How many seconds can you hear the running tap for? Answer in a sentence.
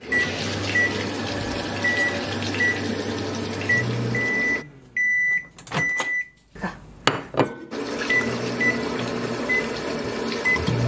The running tap can be heard for 8 seconds in total.